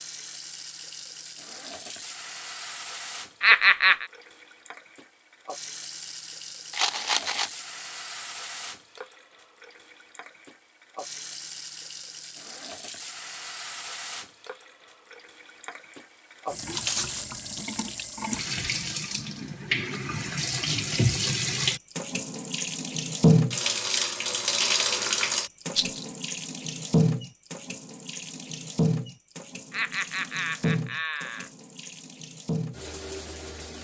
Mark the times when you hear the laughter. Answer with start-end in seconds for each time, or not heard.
3.4-4.0, 29.7-31.5.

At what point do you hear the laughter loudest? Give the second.
4 s.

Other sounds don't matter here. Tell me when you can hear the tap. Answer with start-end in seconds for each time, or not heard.
0.0-33.7.